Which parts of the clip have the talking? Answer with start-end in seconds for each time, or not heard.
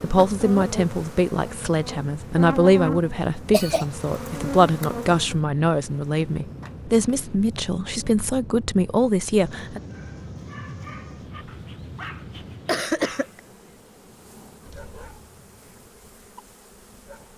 0.0-9.8.